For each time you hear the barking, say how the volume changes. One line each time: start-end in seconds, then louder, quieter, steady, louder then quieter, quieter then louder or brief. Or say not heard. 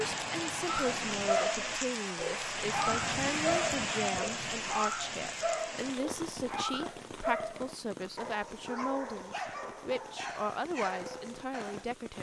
0.7-11.8 quieter.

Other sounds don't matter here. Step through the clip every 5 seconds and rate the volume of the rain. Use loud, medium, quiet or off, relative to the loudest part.
loud, medium, quiet.